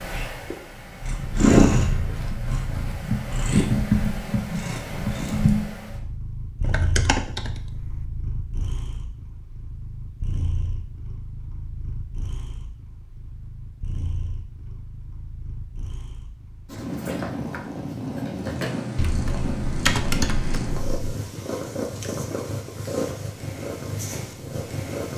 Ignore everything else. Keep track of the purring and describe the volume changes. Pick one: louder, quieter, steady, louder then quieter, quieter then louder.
quieter then louder.